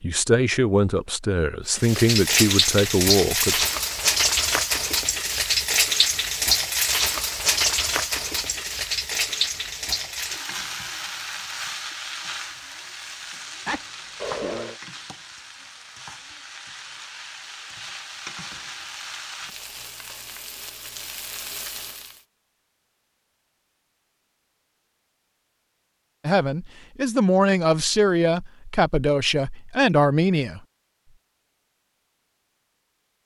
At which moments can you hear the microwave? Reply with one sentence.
You can't hear the microwave here.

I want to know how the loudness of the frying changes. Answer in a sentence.
The loudness of the frying goes down.